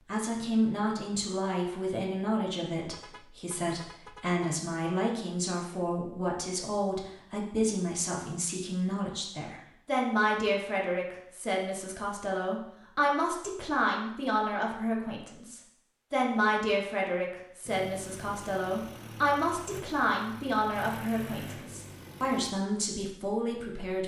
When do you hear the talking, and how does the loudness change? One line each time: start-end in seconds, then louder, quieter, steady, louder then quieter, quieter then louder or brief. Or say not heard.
0.1-24.0 steady.